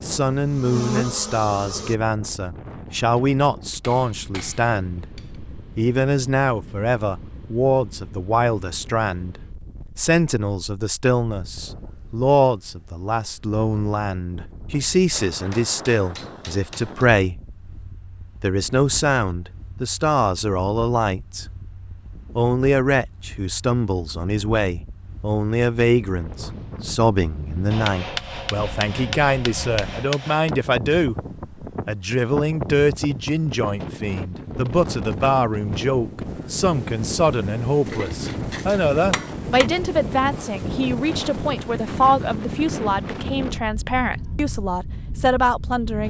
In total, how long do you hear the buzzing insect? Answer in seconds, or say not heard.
2 s.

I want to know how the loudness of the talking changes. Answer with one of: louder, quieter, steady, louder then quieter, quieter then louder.
steady.